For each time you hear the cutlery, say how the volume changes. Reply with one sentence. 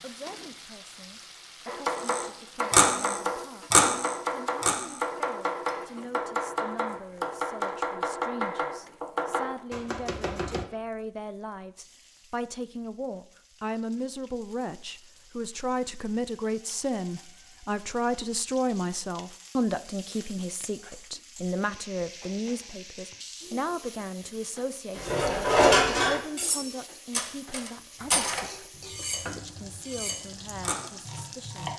You can hear the cutlery briefly from 2.0 to 5.0 s; and from 24.9 to 30.9 s, getting quieter.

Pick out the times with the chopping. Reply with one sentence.
You can hear the chopping from 1.6 to 10.7 s and from 27.9 to 31.7 s.